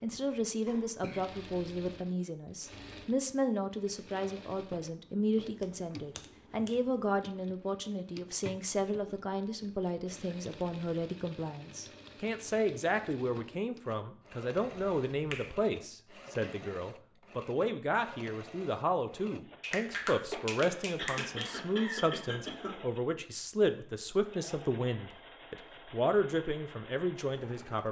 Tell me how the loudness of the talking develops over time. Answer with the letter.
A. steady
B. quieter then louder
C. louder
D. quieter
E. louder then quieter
A.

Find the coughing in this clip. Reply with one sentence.
The coughing can be heard from 0.7 to 1.3 s, from 16.1 to 16.7 s and from 20.3 to 22.8 s.